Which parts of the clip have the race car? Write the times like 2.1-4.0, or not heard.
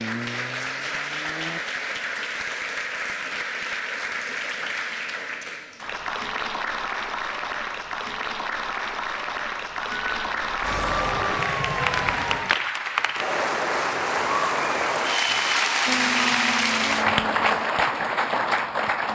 0.0-1.6, 15.8-19.1.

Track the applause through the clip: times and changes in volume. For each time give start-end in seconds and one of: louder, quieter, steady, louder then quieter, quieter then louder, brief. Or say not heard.
0.0-19.1 louder.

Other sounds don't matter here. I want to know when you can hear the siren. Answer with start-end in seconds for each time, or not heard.
10.0-12.6.